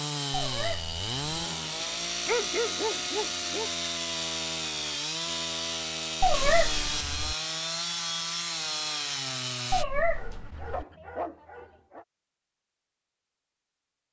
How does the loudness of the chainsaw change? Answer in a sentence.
The loudness of the chainsaw stays about the same.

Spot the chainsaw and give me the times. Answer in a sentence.
You can hear the chainsaw from 0.0 to 9.8 s.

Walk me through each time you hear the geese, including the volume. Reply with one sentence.
The geese can't be heard in this clip.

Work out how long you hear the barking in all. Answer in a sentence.
You can hear the barking for 3 seconds altogether.